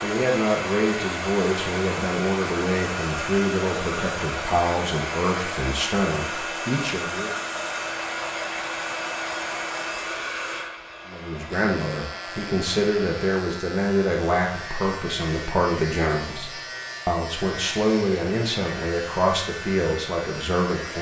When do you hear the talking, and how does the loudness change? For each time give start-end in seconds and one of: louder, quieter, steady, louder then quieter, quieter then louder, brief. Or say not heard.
0.0-7.3 steady
11.1-20.9 steady.